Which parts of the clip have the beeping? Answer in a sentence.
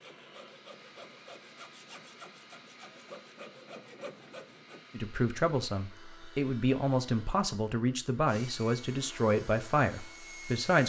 You can't hear the beeping here.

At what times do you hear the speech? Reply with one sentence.
You can hear the speech from 4.9 to 10.8 s.